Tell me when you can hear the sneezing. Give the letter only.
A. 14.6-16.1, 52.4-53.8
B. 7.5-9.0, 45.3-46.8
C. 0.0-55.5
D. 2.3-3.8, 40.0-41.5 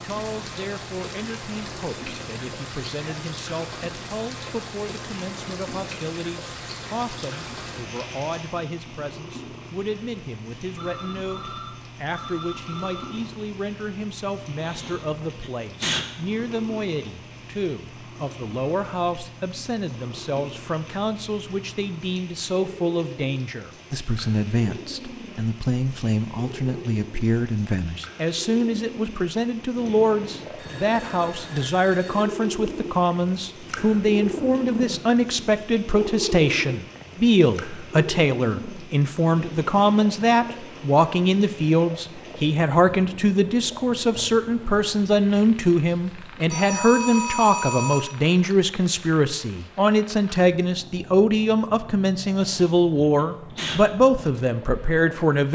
A.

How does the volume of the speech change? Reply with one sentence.
The loudness of the speech goes up.